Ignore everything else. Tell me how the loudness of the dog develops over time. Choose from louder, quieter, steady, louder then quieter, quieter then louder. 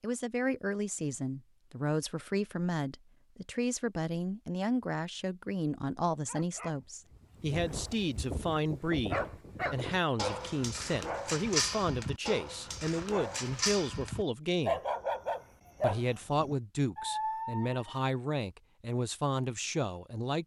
louder.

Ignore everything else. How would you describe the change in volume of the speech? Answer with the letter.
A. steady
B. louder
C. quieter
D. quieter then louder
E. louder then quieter
A.